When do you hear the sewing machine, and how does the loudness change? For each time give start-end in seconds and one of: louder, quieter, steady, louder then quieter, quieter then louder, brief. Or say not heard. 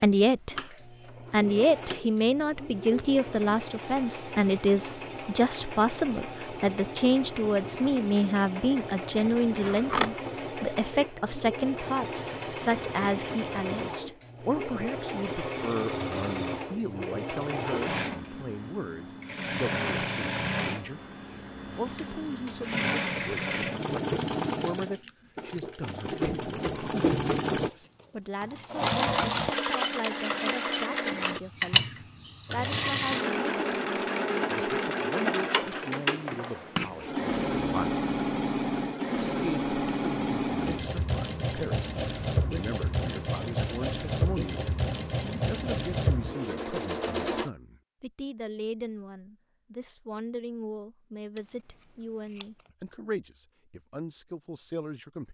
0.1-47.5 louder.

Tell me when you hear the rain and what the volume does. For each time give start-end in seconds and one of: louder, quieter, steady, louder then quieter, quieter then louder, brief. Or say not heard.
not heard.